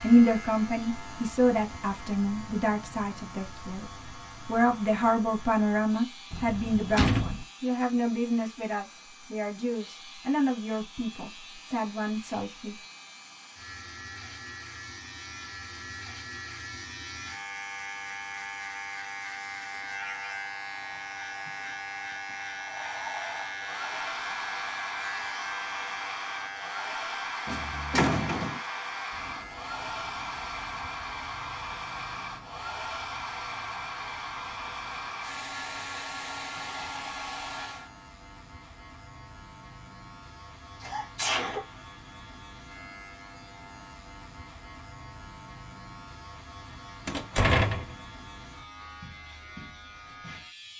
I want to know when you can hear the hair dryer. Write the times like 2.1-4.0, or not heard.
0.0-37.9.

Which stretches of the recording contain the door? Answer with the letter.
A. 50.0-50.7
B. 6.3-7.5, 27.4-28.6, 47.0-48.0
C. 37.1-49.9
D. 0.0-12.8
B.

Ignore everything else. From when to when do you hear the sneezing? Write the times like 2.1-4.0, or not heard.
40.8-41.6.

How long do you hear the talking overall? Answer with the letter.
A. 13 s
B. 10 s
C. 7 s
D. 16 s
A.